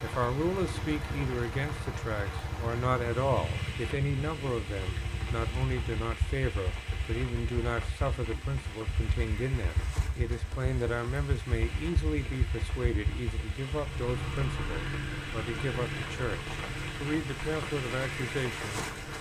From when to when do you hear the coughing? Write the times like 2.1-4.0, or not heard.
not heard.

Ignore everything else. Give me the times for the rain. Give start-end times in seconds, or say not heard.
0.0-19.1.